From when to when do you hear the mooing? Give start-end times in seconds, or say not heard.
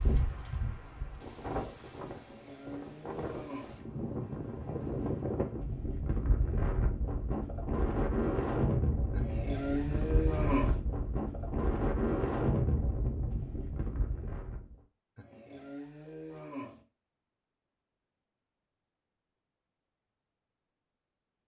2.1-3.7, 9.2-10.8, 15.2-16.9.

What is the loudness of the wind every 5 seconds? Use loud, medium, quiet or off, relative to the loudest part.
medium, loud, loud, off, off.